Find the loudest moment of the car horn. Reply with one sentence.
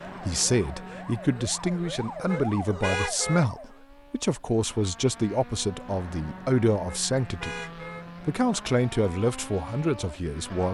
The volume of the car horn peaks at 3 seconds.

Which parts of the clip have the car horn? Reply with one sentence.
You can hear the car horn from 2.2 to 3.5 s and from 6.8 to 8.1 s.